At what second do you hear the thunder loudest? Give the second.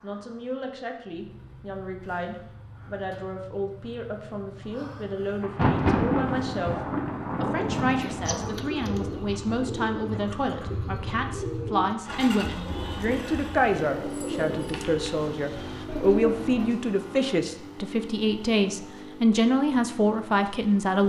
6 s.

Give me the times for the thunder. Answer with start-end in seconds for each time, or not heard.
5.4-8.5.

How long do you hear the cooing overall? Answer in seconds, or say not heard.
9 s.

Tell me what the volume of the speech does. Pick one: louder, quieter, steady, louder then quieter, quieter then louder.
louder.